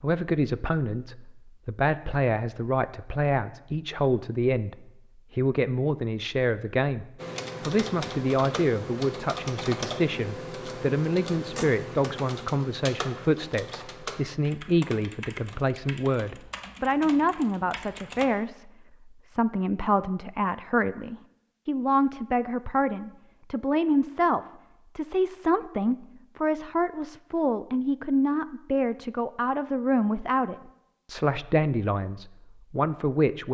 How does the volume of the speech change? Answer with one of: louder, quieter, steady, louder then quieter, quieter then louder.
steady.